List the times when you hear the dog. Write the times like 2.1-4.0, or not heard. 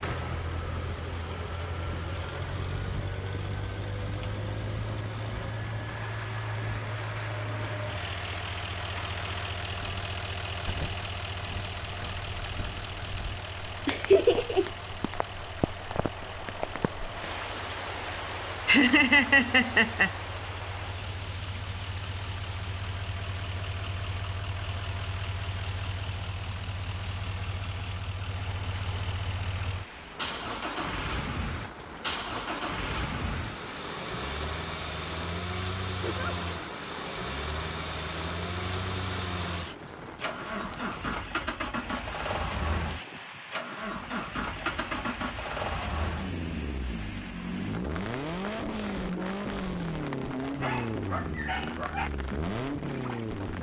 50.6-52.1.